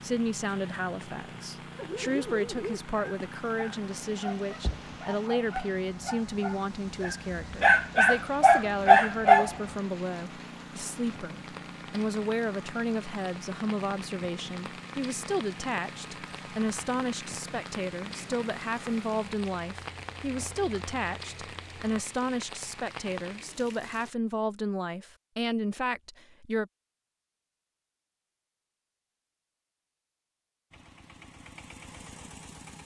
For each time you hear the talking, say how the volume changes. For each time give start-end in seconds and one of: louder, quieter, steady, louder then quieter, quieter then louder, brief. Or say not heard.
0.0-26.7 steady.